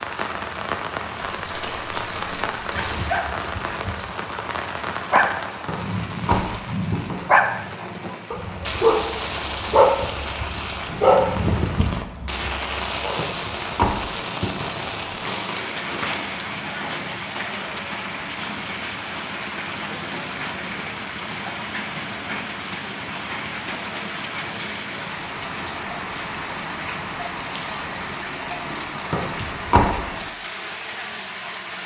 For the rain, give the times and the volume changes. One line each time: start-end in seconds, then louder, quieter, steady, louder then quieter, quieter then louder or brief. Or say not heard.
0.0-31.8 steady.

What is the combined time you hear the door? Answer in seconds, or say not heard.
4 s.